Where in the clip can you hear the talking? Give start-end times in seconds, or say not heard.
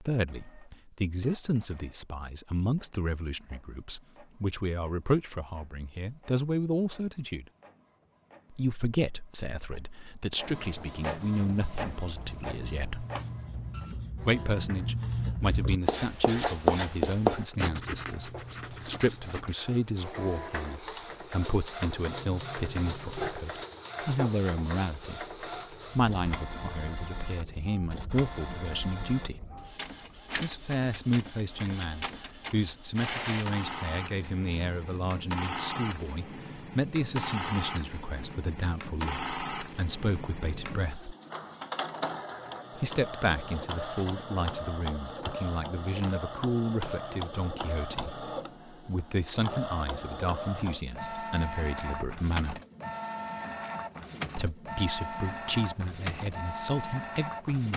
0.0-7.5, 8.5-13.1, 14.2-29.4, 30.4-41.1, 42.8-52.6, 54.4-57.7.